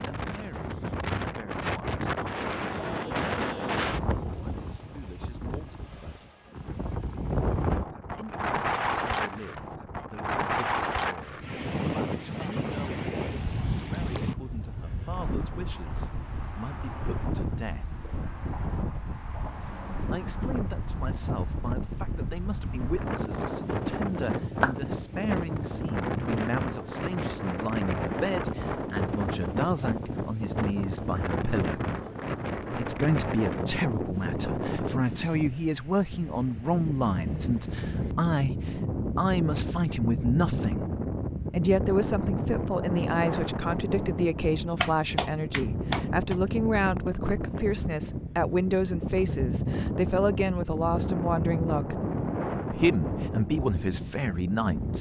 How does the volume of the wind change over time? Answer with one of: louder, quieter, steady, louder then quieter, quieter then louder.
steady.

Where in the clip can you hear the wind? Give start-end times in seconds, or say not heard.
0.0-54.9.